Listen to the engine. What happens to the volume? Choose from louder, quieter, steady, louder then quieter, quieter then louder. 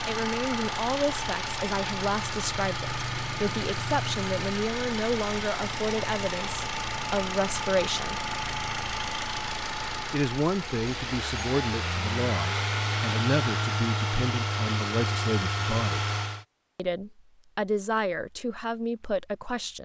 steady.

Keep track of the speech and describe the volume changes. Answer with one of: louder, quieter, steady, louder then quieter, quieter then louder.
steady.